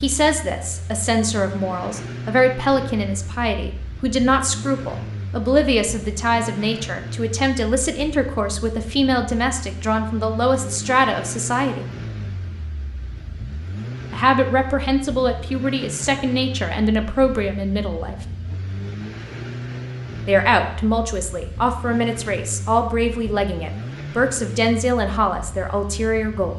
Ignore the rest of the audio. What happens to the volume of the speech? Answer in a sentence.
The volume of the speech stays about the same.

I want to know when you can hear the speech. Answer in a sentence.
The speech can be heard from 0.0 to 11.8 s, from 14.1 to 18.1 s and from 20.2 to 26.5 s.